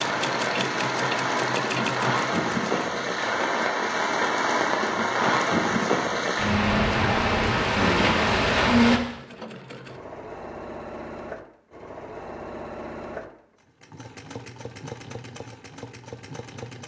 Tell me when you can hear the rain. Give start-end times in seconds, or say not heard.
0.0-9.0.